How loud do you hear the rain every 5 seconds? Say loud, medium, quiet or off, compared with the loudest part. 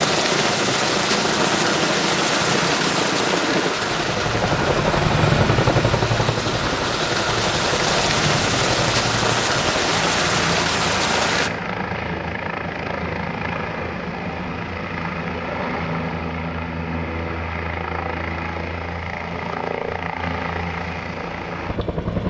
loud, loud, loud, off, off.